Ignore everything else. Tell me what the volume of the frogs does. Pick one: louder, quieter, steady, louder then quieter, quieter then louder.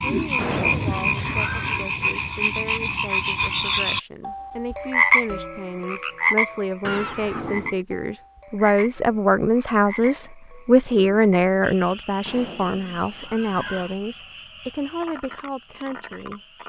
quieter.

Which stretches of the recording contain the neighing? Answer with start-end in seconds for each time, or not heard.
0.3-1.8, 6.8-7.8, 12.2-13.9.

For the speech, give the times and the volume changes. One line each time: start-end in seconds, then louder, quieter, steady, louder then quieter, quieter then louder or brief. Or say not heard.
0.0-16.6 louder then quieter.